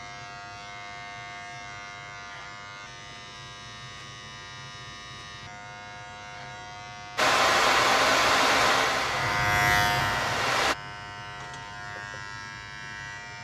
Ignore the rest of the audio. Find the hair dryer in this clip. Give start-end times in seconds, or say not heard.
7.2-10.8.